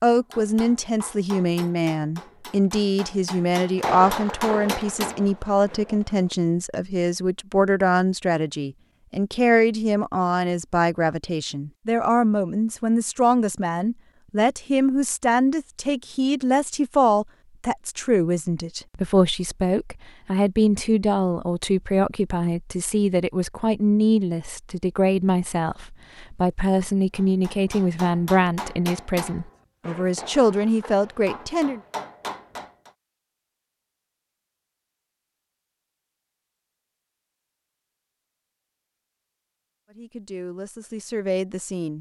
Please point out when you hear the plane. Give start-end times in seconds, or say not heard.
not heard.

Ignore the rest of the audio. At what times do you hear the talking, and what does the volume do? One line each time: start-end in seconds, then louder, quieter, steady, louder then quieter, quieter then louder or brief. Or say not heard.
0.0-31.8 steady
39.9-41.9 brief.